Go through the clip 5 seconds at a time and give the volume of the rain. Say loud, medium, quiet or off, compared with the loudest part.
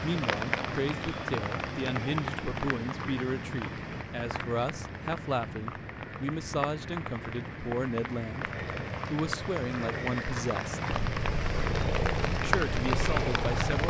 loud, medium, loud.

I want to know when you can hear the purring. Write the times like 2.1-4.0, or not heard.
10.9-13.8.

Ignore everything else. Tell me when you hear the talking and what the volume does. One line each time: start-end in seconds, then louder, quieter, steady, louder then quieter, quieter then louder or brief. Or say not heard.
0.0-10.8 steady
12.3-13.8 brief.